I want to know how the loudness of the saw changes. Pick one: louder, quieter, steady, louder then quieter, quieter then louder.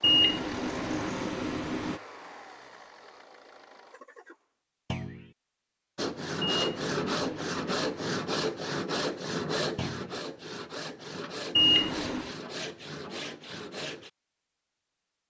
quieter.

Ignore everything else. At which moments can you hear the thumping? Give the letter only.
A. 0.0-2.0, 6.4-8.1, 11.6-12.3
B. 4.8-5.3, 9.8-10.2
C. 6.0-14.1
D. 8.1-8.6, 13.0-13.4
B.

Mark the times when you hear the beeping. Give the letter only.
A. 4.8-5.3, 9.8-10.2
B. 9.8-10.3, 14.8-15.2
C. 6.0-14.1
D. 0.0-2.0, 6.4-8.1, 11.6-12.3
D.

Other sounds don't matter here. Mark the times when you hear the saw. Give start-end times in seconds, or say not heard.
6.0-14.1.